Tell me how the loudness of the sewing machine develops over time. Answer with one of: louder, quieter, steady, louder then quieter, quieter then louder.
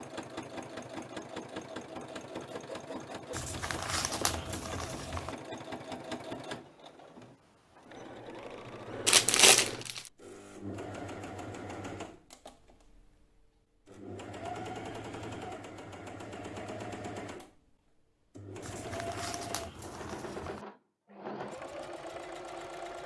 steady.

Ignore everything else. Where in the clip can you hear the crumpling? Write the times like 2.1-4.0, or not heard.
3.4-5.3, 9.1-10.1, 18.6-20.6.